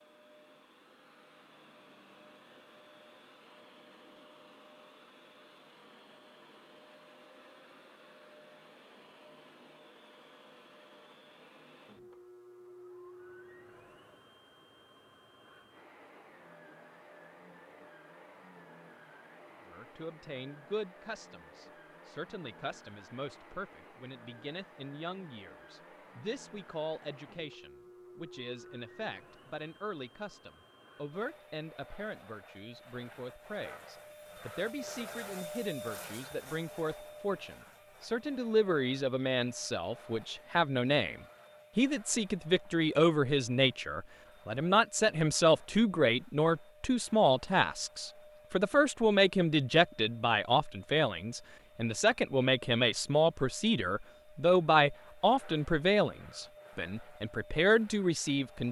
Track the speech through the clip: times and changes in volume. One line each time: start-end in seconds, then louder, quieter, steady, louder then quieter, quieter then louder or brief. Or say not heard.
19.6-58.6 louder.